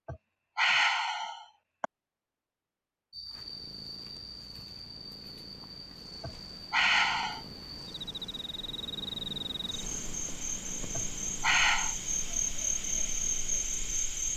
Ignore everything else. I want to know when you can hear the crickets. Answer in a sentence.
You can hear the crickets from 3.1 to 14.3 s.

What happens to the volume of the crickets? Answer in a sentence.
The loudness of the crickets goes up.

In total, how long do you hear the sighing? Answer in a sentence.
You can hear the sighing for 4 seconds altogether.